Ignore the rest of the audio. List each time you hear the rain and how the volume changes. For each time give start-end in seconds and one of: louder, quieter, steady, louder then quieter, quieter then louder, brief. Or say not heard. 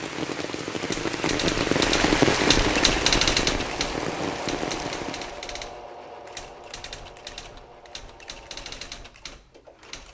0.0-5.5 louder then quieter.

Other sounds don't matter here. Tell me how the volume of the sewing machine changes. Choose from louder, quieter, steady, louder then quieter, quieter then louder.
quieter.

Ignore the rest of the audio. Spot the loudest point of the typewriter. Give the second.
3 s.